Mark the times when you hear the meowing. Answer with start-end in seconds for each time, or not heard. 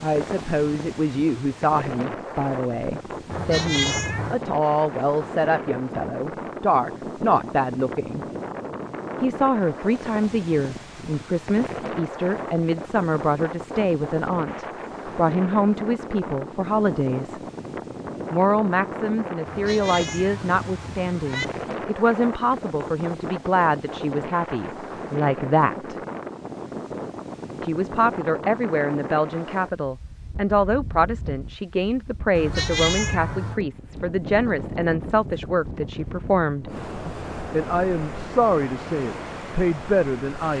3.3-4.4, 19.4-21.4, 32.4-33.6.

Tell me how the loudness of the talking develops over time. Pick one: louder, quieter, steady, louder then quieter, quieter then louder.
steady.